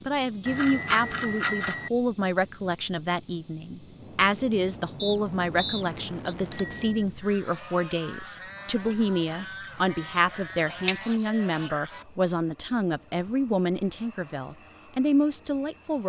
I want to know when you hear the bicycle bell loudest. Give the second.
11 s.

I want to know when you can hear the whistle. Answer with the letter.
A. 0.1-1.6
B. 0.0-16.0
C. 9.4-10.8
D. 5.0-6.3
D.